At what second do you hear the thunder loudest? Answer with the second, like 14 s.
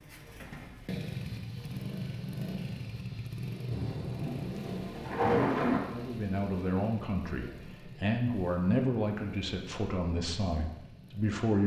5 s.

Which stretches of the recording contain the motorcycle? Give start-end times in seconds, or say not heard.
0.0-11.4.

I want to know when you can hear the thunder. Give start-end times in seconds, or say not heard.
3.7-5.8.